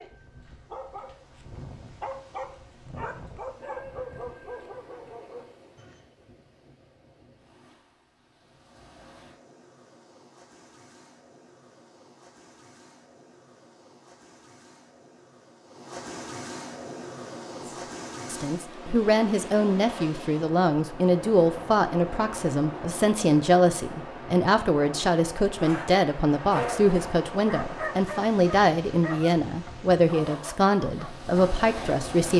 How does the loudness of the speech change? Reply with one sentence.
The volume of the speech stays about the same.